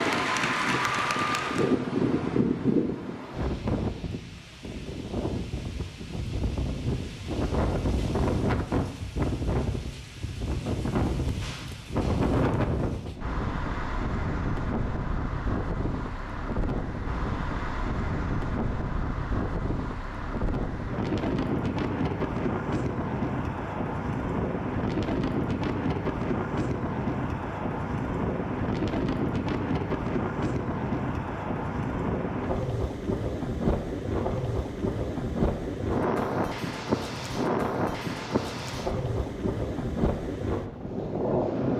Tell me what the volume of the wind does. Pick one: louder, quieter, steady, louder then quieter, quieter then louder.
steady.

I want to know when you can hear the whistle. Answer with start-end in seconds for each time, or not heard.
not heard.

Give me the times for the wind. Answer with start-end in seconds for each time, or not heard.
0.0-41.7.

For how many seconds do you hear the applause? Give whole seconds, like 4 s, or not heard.
2 s.